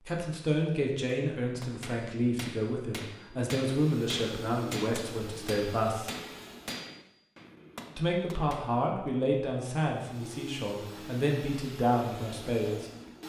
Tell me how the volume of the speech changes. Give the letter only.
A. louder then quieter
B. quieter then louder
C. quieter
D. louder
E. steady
E.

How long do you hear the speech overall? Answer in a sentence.
You can hear the speech for 11 seconds altogether.